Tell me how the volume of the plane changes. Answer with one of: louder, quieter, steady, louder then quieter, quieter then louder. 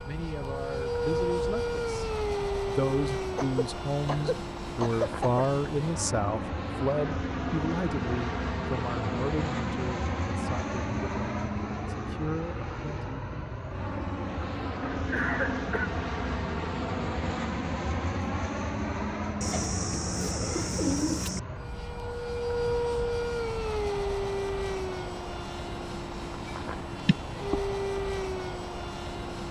steady.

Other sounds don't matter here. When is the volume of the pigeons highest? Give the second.
21 s.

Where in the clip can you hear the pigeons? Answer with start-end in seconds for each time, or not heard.
19.4-21.4.